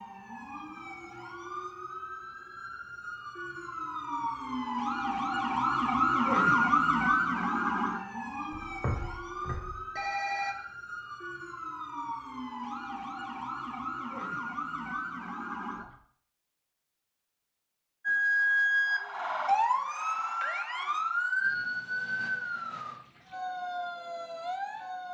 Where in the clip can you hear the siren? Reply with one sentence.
The siren can be heard from 0.0 to 15.9 s and from 18.1 to 25.1 s.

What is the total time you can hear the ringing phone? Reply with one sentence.
The ringing phone can be heard for 2 seconds in total.